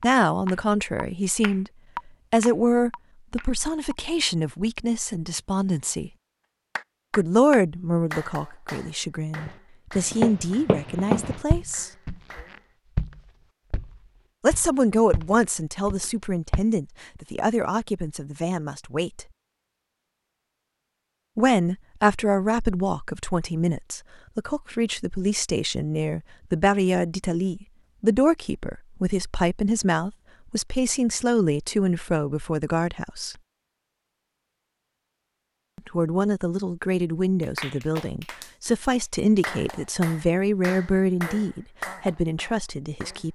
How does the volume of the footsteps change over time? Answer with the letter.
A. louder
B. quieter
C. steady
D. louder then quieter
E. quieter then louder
B.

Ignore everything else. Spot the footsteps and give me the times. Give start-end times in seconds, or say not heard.
9.3-16.6.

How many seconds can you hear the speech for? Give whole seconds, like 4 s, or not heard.
35 s.